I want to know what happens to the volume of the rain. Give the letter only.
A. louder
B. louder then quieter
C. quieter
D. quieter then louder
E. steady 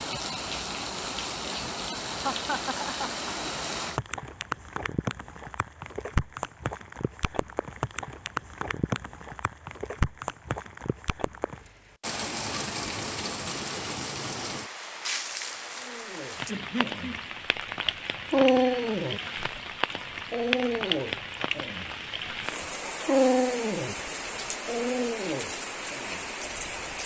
E.